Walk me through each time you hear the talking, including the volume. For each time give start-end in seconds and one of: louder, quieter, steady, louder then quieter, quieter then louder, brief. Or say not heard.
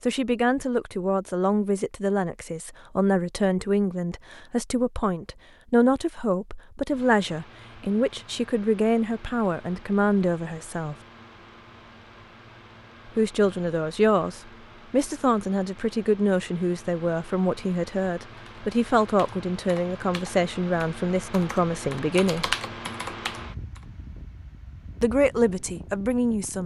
0.0-10.9 steady
13.2-22.6 steady
25.0-26.6 brief.